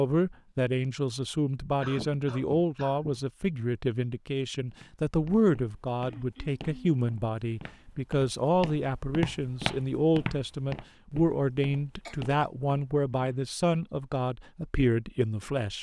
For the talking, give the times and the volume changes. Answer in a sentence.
The talking can be heard from 0.0 to 15.7 s, at a steady volume.